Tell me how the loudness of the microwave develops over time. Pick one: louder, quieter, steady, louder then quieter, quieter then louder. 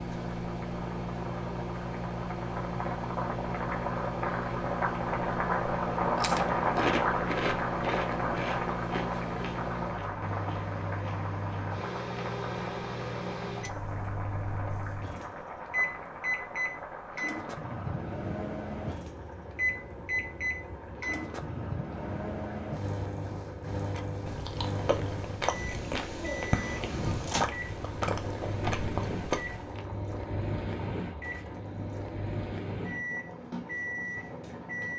steady.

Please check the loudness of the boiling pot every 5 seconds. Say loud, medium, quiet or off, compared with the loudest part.
medium, loud, medium, quiet, quiet, quiet, quiet.